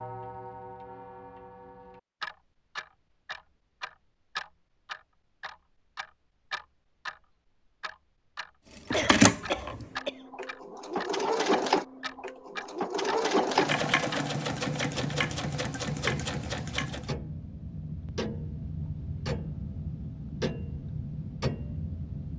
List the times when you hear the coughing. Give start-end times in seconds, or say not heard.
8.9-10.2.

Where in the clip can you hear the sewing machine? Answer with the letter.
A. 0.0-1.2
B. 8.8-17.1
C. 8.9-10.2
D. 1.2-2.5
B.